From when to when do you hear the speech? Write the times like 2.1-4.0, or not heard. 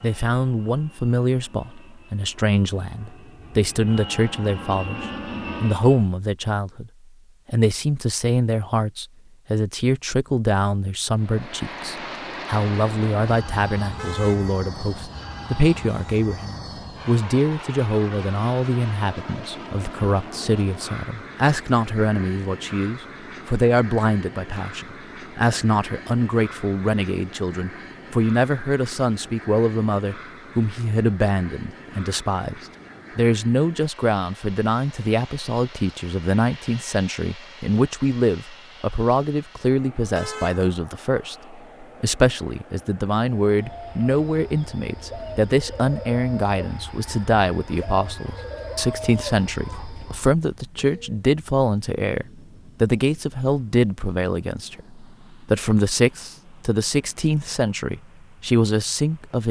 0.0-59.4.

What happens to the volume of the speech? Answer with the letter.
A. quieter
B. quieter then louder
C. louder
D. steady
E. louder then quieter
D.